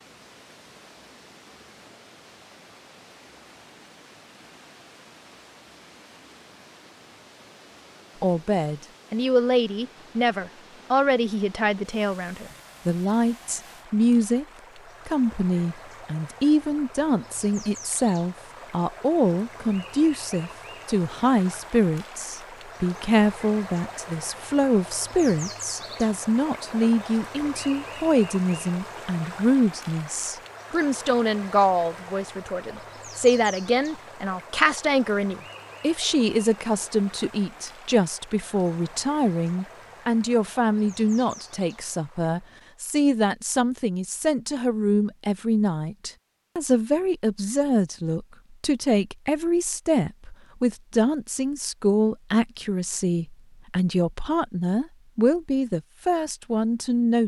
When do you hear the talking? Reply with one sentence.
You can hear the talking from 8.2 to 14.4 s and from 15.1 to 57.2 s.